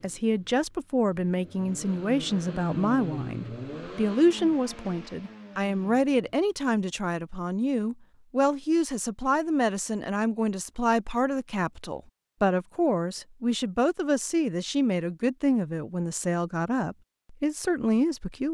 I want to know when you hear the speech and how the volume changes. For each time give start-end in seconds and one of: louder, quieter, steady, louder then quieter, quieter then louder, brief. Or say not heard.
0.0-18.4 steady.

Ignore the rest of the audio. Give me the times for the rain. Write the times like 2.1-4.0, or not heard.
not heard.